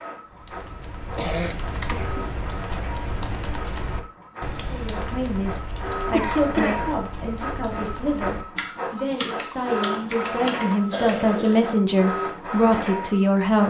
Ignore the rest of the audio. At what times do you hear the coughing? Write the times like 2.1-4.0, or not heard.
1.1-2.3, 6.1-6.9, 10.9-11.7.